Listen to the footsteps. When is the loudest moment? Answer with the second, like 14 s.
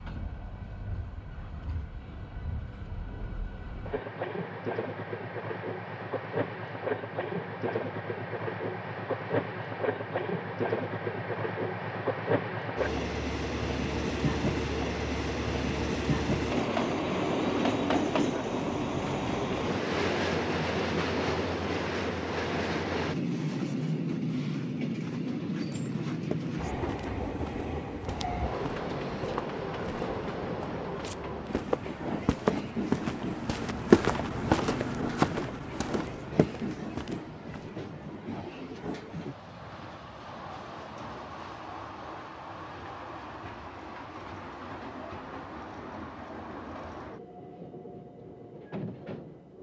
34 s.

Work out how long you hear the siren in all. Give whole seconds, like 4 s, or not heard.
not heard.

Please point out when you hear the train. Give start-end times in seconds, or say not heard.
0.0-49.5.